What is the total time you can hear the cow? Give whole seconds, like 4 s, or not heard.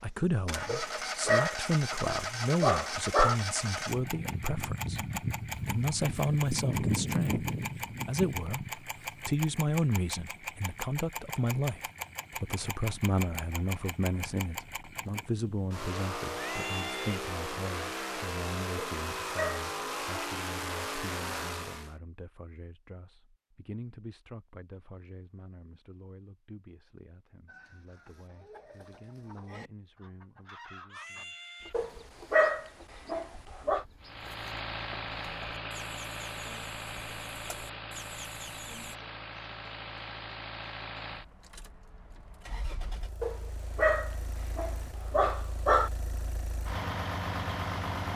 not heard.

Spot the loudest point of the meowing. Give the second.
17 s.